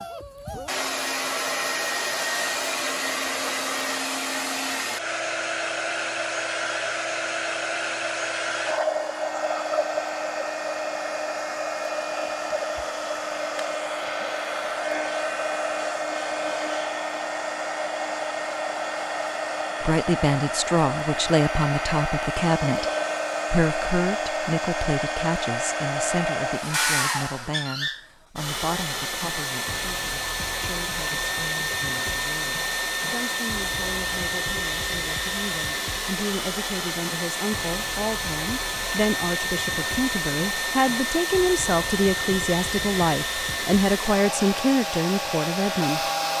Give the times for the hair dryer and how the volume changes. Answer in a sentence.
You can hear the hair dryer from 0.0 to 46.3 s, at a steady volume.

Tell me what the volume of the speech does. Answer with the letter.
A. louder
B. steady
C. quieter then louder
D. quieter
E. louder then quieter
C.